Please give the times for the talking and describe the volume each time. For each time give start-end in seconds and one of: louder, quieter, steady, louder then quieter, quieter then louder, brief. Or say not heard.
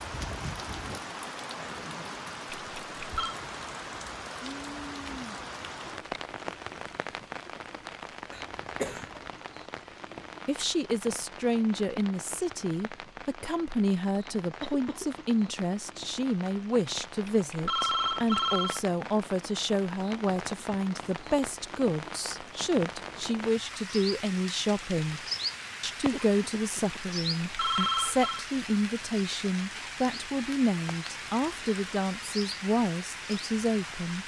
10.4-25.2 steady
25.8-34.2 steady.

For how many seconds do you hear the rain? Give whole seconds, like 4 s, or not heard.
34 s.